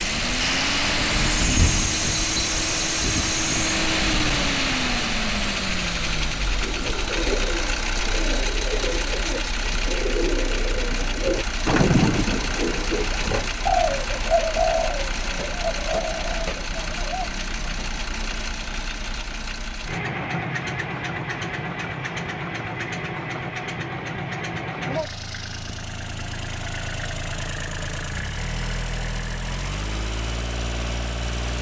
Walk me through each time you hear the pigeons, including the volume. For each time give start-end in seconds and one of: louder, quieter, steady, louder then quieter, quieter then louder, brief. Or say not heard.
6.6-17.3 louder then quieter.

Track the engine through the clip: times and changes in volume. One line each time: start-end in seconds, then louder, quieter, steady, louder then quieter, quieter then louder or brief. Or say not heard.
0.0-31.5 quieter.